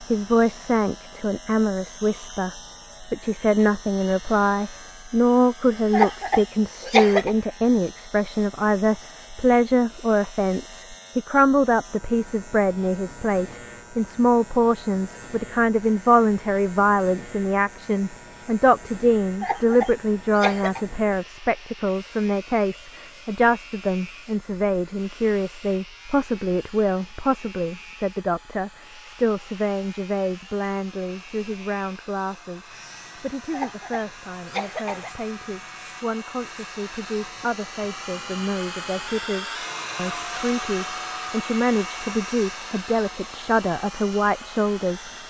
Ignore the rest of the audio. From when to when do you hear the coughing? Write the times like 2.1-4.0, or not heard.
5.9-7.3, 19.4-20.9, 33.5-35.1.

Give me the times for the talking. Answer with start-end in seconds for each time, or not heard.
0.0-45.2.